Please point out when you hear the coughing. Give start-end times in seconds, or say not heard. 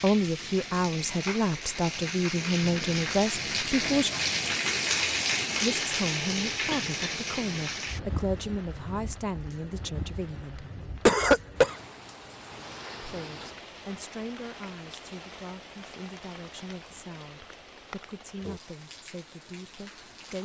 6.7-7.2, 11.1-11.8.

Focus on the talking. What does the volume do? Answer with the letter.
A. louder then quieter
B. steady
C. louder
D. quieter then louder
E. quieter
E.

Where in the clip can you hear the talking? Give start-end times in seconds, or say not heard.
0.0-4.1, 5.6-10.7, 13.0-20.4.